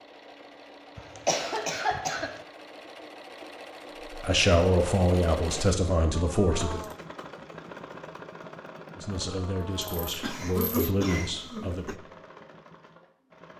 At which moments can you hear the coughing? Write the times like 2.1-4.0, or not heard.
0.9-2.4, 10.2-11.9.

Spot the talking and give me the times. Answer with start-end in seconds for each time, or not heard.
4.1-6.8, 8.9-12.0.